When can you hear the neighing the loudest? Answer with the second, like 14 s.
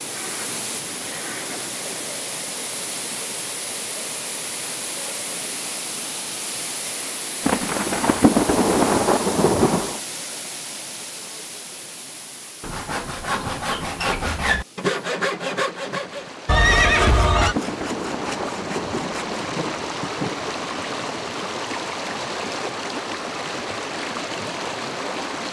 17 s.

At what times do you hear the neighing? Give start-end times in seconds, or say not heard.
0.1-1.6, 16.4-17.6.